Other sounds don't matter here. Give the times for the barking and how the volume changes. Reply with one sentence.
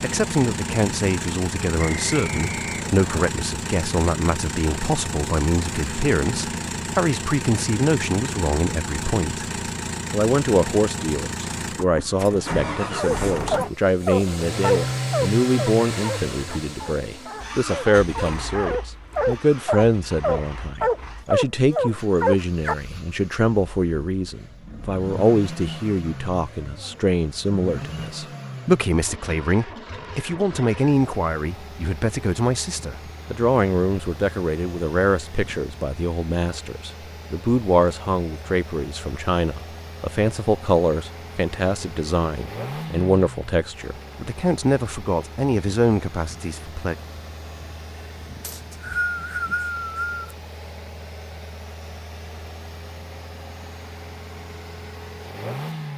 The barking can be heard from 12.9 to 22.8 s, getting quieter then louder.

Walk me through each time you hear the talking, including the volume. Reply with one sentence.
The talking can be heard from 0.0 to 9.5 s, at a steady volume; and from 10.1 to 47.0 s, at a steady volume.